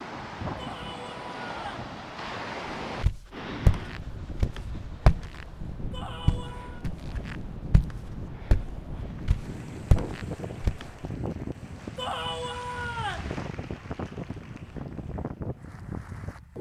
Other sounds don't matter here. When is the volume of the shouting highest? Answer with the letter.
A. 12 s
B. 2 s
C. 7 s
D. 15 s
A.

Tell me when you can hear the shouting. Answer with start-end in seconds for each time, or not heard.
0.6-1.9, 5.9-6.8, 11.9-13.3.